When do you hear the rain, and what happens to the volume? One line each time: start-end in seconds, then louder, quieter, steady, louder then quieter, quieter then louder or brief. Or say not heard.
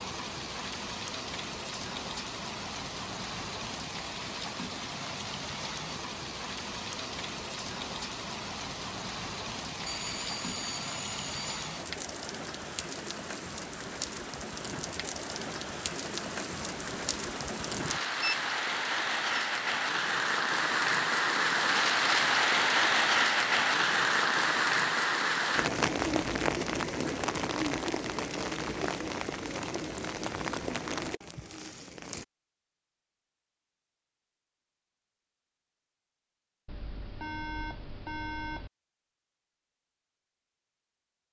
0.0-32.2 louder then quieter.